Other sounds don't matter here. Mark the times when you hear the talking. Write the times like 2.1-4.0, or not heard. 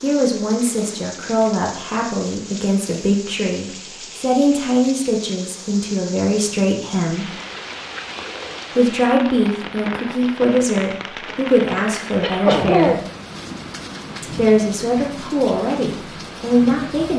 0.0-7.3, 8.8-13.0, 14.2-17.1.